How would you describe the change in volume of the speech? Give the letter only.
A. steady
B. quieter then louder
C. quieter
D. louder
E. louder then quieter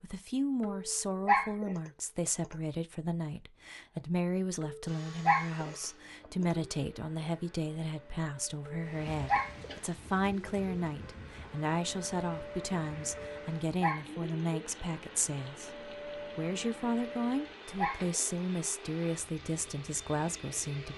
A.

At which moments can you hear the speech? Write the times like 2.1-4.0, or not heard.
0.0-20.9.